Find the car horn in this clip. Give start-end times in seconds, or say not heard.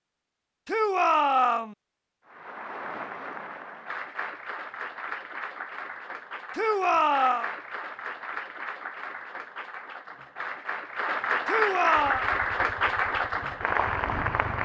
not heard.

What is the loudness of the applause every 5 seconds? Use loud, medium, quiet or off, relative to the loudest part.
medium, medium, loud.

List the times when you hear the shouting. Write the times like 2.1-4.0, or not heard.
0.7-1.8, 6.5-7.5, 11.4-12.2.